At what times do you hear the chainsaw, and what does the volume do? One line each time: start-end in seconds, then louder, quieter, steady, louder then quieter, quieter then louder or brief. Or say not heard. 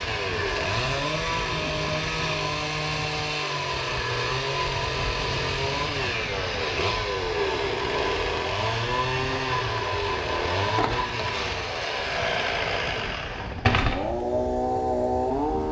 0.0-15.6 steady.